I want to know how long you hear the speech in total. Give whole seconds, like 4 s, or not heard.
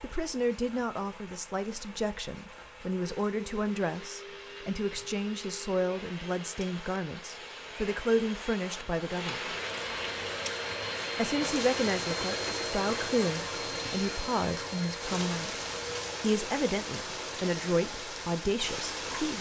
17 s.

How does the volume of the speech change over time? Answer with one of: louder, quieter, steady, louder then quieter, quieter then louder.
steady.